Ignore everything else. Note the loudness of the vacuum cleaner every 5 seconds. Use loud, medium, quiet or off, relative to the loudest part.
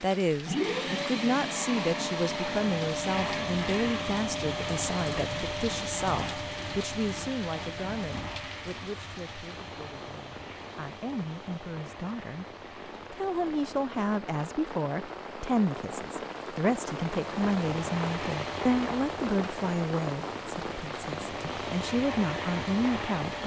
loud, medium, quiet, medium, medium.